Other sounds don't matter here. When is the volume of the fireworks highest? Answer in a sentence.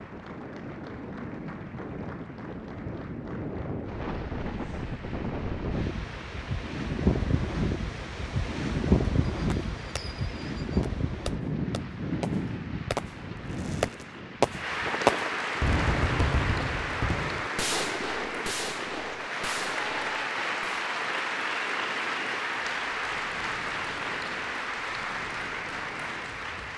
The volume of the fireworks peaks at 15 seconds.